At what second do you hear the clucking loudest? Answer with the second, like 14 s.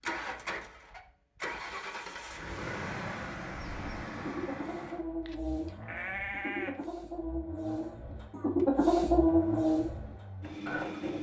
9 s.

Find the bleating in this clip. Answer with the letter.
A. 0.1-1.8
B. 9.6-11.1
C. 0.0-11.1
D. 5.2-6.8
D.